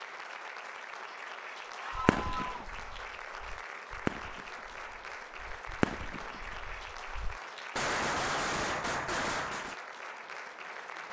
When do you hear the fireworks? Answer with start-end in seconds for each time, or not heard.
1.9-9.8.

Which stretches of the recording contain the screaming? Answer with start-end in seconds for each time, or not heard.
1.8-2.6.